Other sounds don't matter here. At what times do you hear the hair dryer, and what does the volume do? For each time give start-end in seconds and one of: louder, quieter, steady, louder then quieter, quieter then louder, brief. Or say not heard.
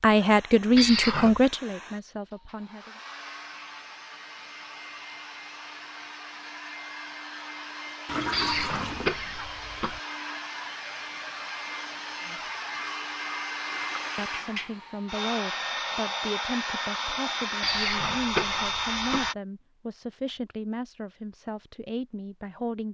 0.0-19.4 louder.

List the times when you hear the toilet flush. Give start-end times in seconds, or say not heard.
8.1-9.1, 13.7-14.6.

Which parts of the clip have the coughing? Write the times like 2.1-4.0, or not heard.
0.8-1.4, 8.3-10.0, 17.6-19.3.